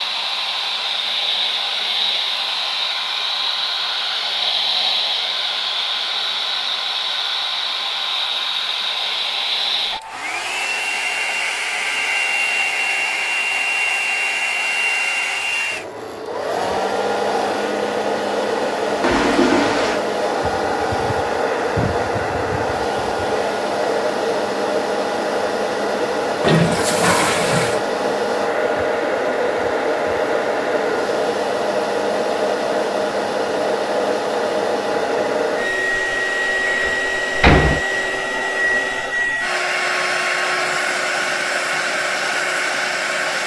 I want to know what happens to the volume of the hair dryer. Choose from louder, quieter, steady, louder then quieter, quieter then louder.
steady.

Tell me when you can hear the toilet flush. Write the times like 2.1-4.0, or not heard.
19.0-20.0, 26.4-27.9.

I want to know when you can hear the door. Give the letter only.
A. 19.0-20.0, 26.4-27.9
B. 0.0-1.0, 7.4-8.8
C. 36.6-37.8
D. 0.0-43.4
C.